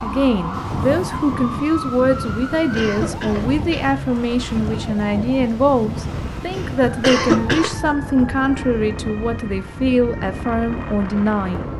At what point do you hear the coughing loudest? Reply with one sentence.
The loudest moment of the coughing is at 7 seconds.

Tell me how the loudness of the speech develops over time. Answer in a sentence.
The volume of the speech stays about the same.